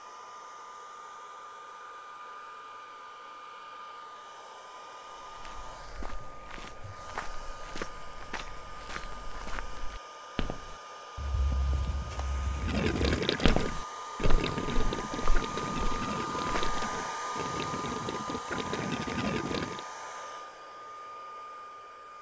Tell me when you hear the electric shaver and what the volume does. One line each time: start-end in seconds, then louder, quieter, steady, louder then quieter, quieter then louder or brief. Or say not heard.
not heard.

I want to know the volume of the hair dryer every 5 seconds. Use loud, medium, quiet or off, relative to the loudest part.
medium, medium, medium, loud, medium.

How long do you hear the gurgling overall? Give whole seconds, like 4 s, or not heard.
7 s.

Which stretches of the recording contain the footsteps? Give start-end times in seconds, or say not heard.
5.1-16.8.